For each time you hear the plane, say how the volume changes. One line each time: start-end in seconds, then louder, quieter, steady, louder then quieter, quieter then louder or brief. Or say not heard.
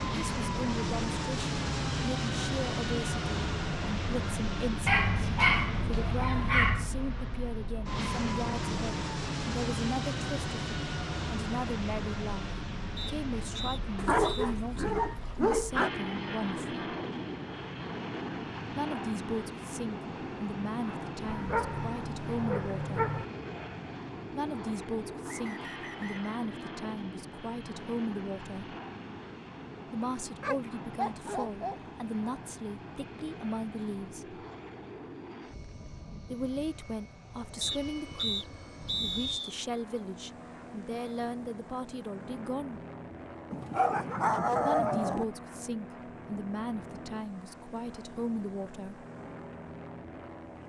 0.0-50.6 quieter.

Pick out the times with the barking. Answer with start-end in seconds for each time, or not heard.
4.8-6.9, 13.9-15.9, 21.2-23.2, 30.4-31.8, 43.5-45.2.